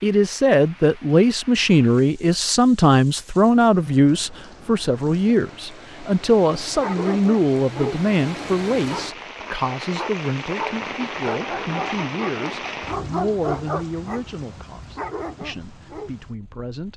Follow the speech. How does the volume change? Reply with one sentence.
The loudness of the speech goes down.